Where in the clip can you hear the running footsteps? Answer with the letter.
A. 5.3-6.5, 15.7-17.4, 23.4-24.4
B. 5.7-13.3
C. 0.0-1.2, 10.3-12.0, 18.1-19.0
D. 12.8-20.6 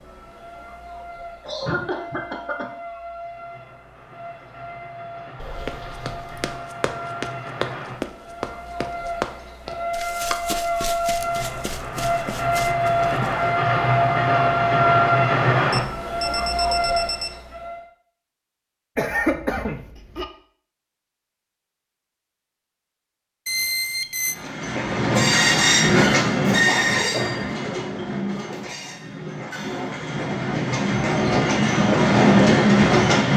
B.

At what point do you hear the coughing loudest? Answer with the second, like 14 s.
19 s.